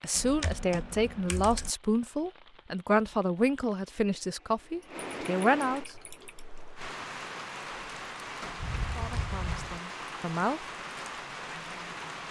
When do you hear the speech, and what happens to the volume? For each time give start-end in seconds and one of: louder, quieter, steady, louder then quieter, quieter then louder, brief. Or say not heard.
0.0-5.8 steady
8.9-10.6 brief.